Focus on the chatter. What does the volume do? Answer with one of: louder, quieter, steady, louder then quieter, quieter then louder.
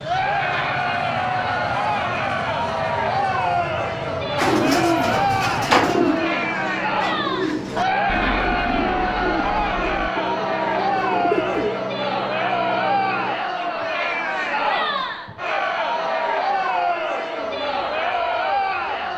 steady.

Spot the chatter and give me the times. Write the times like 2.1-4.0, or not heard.
0.0-19.1.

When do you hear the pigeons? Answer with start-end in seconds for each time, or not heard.
4.3-11.8.